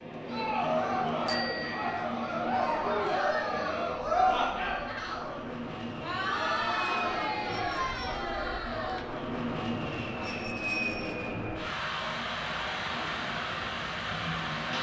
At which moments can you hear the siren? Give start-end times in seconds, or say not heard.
not heard.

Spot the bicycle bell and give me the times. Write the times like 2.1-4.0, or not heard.
1.2-2.0, 7.5-8.2, 10.2-11.2.